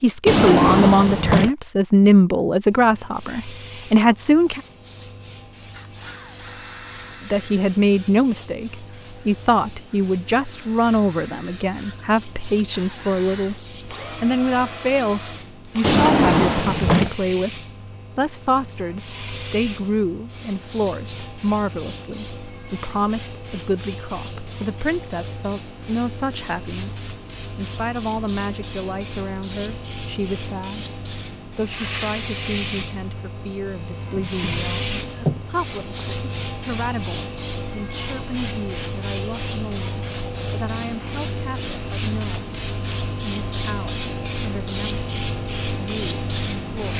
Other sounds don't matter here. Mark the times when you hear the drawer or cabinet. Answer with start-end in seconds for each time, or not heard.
0.2-1.5, 15.8-17.1, 34.1-35.4.